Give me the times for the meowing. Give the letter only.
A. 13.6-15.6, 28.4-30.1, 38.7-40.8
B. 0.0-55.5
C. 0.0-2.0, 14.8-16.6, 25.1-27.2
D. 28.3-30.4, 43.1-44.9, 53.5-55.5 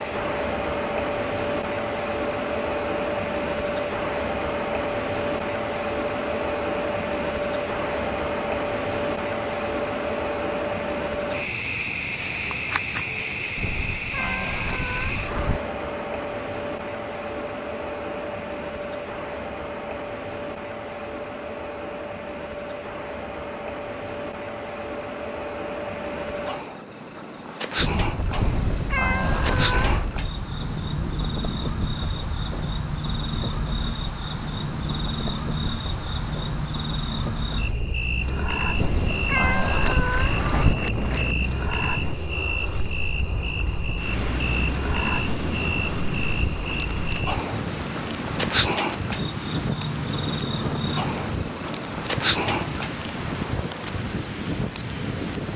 A.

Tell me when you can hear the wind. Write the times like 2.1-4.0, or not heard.
27.8-55.5.